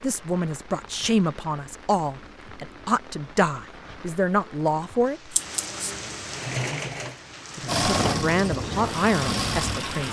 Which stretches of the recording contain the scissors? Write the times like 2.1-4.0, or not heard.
5.3-6.0.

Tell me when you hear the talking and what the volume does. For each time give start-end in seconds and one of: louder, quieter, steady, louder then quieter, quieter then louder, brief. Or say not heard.
0.0-5.3 steady
7.5-10.0 brief.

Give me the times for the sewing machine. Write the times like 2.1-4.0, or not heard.
6.3-10.0.